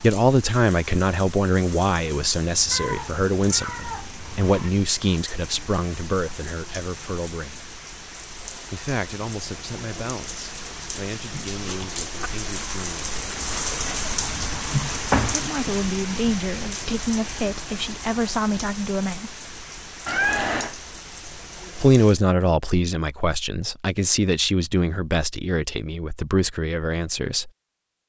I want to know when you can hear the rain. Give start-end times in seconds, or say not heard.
0.0-22.1.